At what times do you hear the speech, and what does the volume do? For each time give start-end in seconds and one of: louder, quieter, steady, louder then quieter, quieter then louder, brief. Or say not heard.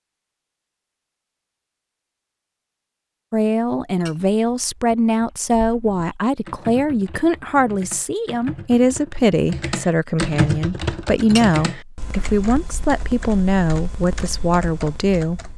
3.3-15.5 steady.